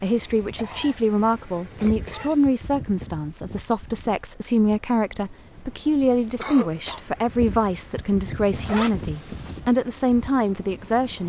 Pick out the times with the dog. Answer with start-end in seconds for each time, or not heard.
not heard.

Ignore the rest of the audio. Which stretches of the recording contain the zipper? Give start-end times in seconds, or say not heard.
8.6-9.6.